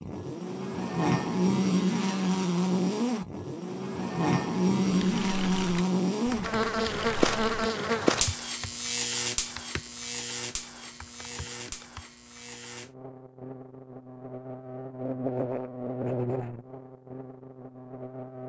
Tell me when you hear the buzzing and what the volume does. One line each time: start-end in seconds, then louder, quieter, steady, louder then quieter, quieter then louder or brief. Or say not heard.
0.0-18.4 quieter then louder.